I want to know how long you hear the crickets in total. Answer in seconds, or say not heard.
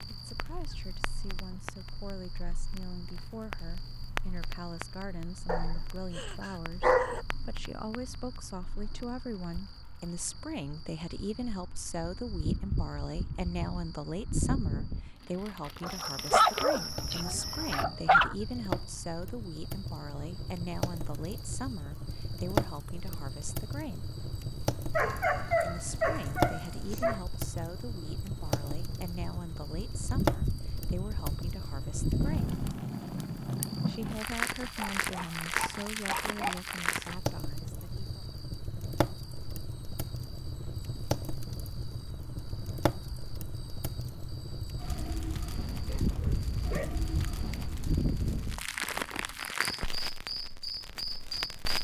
52 s.